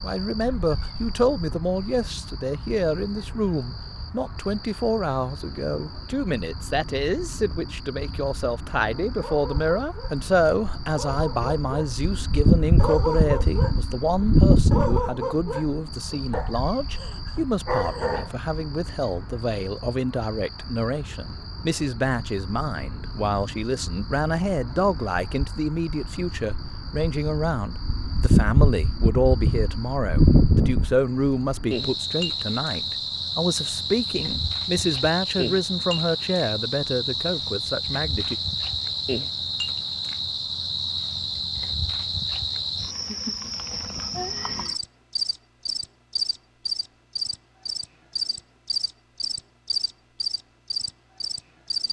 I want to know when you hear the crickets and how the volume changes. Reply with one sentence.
You can hear the crickets from 0.0 to 51.8 s, getting louder.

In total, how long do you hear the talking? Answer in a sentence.
You can hear the talking for 38 seconds altogether.